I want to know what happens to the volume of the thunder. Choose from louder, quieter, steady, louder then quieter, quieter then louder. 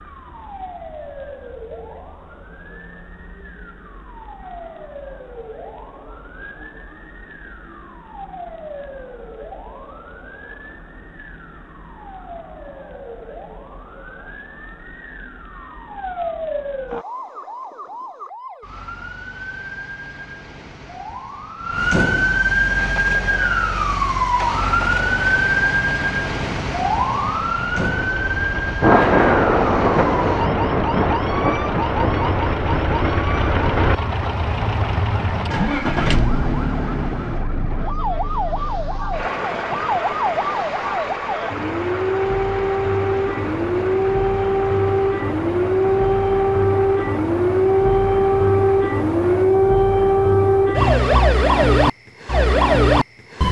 quieter.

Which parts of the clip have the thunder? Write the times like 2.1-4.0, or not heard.
28.8-33.1.